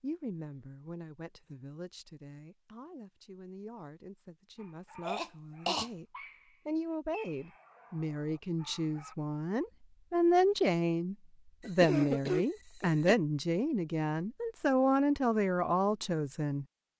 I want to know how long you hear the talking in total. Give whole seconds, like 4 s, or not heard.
16 s.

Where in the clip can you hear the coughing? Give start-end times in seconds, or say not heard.
5.0-5.8, 11.6-13.2.